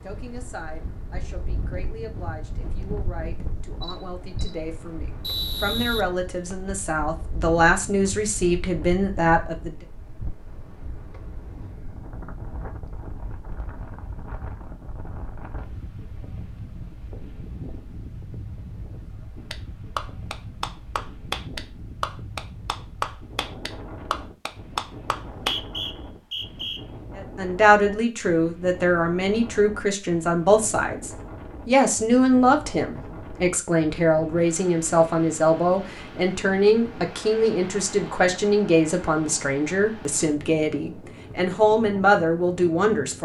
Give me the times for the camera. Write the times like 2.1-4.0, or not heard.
3.8-4.7.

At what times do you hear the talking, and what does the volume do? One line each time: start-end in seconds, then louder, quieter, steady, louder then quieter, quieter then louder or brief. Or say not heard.
0.0-9.8 louder
27.1-43.2 steady.